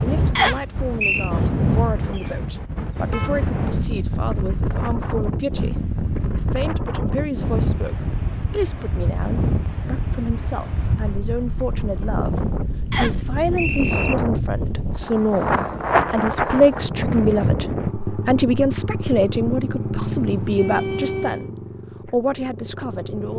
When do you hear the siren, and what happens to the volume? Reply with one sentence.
The siren can't be heard in this clip.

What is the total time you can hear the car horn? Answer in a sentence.
You can hear the car horn for 3 seconds altogether.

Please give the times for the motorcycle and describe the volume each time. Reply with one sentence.
You can hear the motorcycle from 17.9 to 23.3 s, getting quieter.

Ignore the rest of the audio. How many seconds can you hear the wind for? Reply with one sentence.
The wind can be heard for 18 seconds in total.